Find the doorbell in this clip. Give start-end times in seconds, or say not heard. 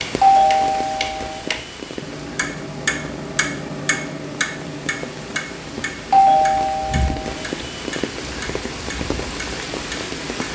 0.2-1.4, 6.1-7.3.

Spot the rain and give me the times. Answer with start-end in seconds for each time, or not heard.
0.0-10.5.